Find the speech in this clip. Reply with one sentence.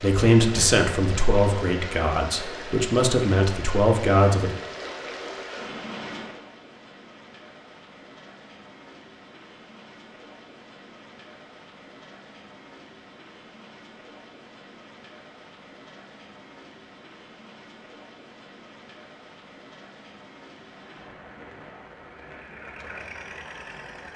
You can hear the speech from 0.0 to 4.5 s.